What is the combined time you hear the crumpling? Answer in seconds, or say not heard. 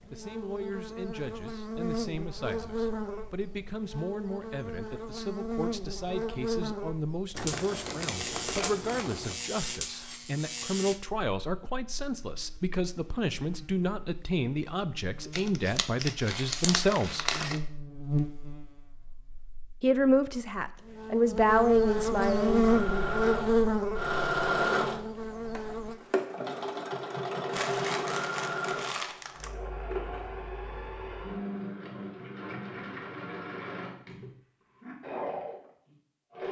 6 s.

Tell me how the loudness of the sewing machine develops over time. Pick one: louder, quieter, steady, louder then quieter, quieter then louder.
quieter.